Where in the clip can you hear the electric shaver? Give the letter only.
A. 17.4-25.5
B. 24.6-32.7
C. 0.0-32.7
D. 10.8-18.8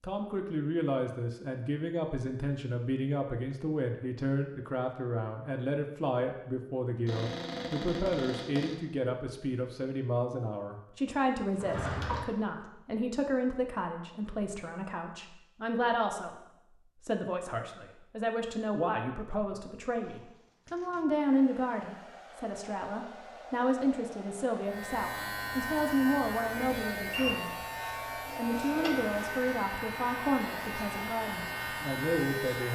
B.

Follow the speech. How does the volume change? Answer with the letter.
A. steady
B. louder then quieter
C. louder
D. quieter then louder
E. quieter
A.